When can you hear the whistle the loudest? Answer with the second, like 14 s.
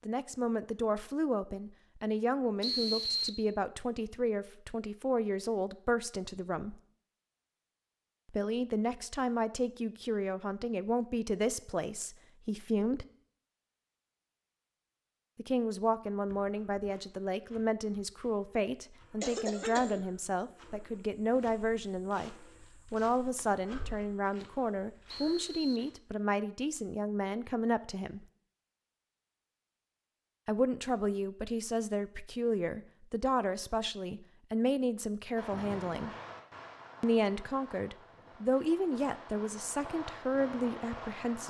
3 s.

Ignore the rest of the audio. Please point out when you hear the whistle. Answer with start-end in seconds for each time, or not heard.
2.6-3.4, 25.1-25.9.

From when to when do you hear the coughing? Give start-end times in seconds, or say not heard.
19.2-20.1.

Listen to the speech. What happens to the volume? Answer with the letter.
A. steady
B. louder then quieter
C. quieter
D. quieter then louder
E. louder
A.